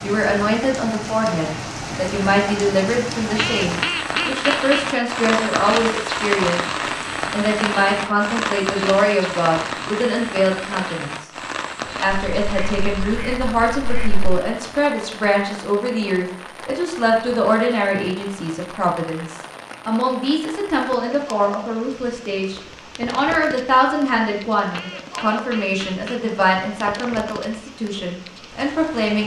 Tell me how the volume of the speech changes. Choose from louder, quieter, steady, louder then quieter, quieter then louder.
steady.